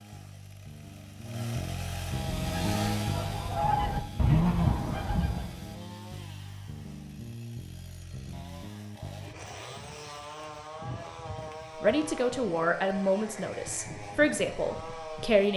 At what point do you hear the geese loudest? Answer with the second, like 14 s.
4 s.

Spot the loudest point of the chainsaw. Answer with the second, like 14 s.
3 s.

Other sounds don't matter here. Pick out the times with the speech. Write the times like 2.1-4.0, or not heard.
11.8-15.5.